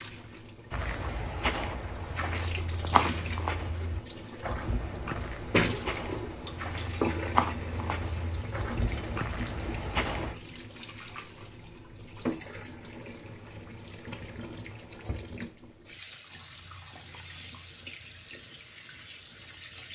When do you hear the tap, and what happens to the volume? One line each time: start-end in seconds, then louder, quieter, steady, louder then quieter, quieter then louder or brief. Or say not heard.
0.0-19.9 louder then quieter.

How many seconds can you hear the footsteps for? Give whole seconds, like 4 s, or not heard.
10 s.